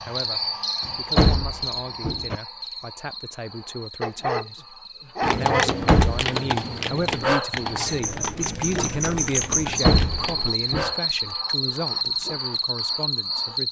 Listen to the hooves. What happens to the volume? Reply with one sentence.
The volume of the hooves goes down.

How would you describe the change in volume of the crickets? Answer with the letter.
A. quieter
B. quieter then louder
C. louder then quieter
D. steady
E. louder
B.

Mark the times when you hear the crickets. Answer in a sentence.
The crickets can be heard from 0.0 to 13.6 s.